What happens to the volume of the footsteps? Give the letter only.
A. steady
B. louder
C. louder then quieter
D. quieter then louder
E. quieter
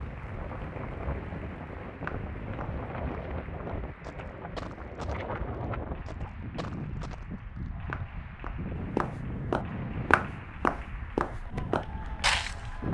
B.